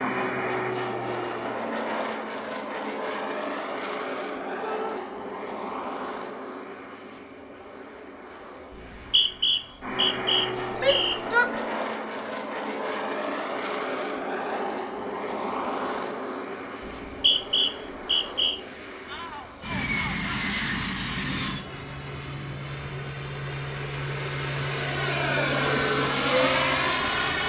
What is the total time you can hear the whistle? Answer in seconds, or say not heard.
4 s.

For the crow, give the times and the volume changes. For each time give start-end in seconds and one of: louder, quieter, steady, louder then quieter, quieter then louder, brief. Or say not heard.
not heard.